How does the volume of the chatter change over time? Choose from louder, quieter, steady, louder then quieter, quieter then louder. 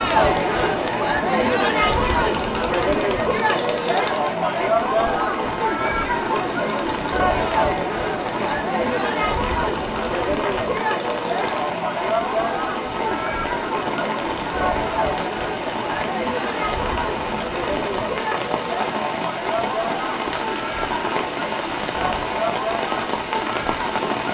quieter.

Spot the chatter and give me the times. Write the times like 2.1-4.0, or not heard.
0.0-24.2.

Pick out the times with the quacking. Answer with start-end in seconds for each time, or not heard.
not heard.